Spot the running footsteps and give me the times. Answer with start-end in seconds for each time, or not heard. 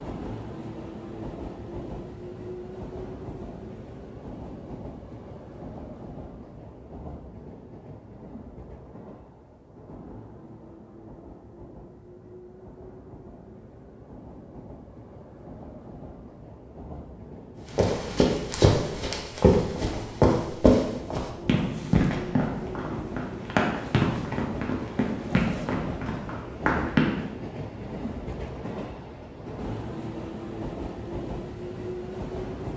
17.8-27.2.